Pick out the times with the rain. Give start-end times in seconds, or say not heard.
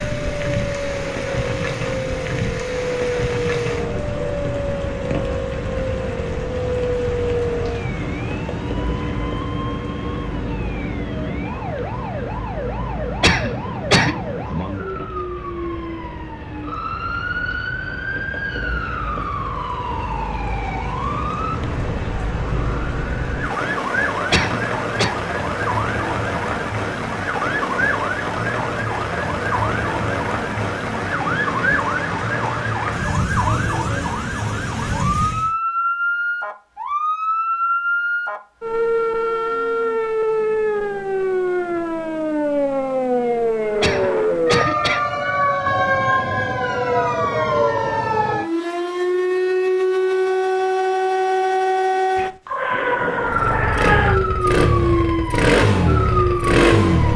0.0-35.5.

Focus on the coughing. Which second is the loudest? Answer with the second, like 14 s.
14 s.